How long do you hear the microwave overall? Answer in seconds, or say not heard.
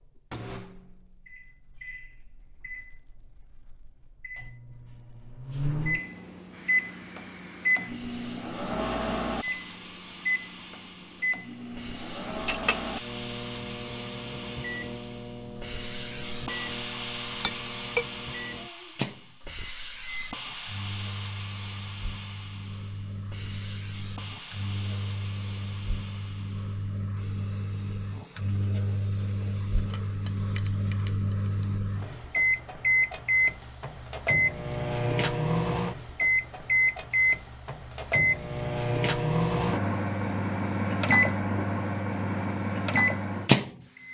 44 s.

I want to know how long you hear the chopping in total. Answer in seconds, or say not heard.
not heard.